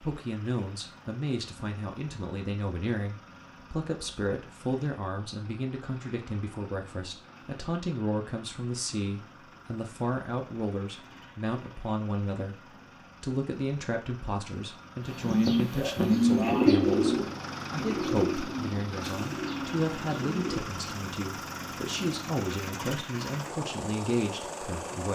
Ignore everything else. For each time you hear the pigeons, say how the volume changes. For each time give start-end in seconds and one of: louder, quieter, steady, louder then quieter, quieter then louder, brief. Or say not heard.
15.2-20.6 quieter.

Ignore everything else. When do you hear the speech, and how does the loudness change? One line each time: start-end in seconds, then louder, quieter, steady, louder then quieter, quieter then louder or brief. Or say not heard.
0.0-25.1 steady.